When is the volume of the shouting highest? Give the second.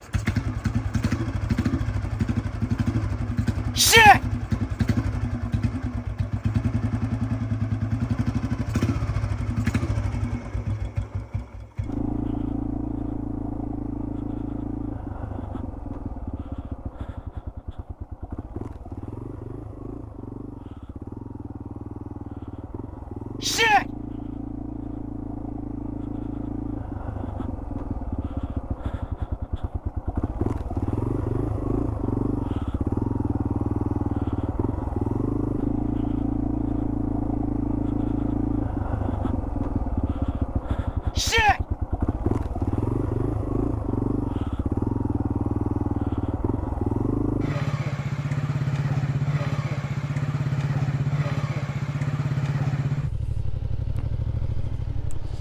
4 s.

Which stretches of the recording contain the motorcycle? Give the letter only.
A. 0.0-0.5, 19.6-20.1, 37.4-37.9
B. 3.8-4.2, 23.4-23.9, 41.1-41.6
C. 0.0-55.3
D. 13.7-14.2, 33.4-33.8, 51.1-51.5
C.